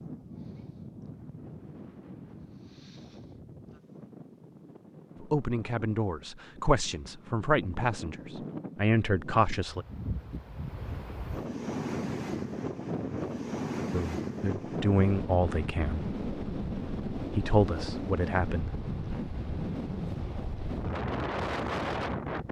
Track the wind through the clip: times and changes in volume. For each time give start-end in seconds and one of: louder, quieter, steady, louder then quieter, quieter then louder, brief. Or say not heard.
0.0-22.4 louder.